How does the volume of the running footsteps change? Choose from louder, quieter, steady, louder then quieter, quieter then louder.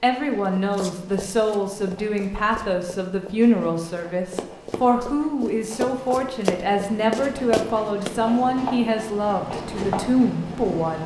louder.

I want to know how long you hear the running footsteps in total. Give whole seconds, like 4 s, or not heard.
8 s.